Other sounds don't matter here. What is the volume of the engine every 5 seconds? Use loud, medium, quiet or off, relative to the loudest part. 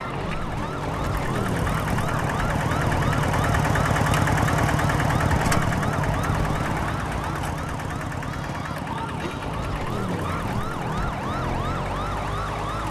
loud, loud, medium.